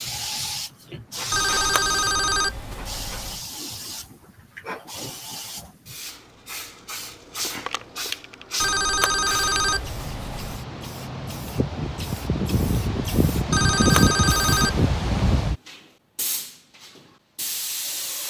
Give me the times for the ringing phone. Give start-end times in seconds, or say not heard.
1.3-3.4, 8.6-10.6, 13.5-14.9.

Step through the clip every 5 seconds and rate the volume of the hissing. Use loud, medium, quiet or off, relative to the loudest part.
medium, medium, loud, loud.